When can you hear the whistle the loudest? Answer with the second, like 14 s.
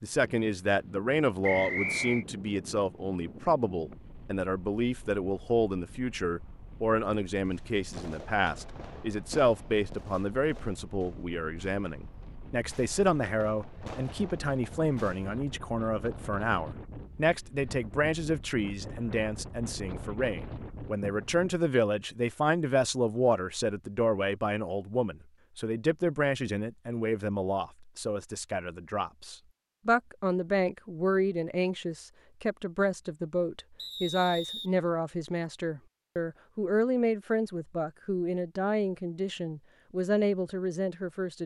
2 s.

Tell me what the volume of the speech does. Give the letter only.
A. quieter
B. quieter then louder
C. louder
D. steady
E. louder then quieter
D.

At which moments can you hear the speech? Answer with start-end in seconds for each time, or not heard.
0.0-41.4.